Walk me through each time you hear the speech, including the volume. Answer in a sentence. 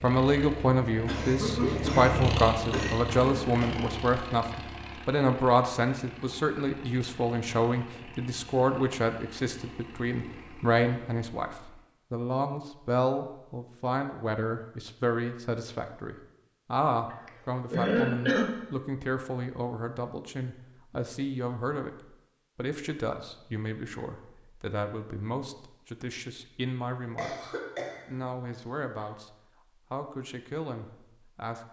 The speech can be heard from 0.0 to 31.6 s, getting quieter.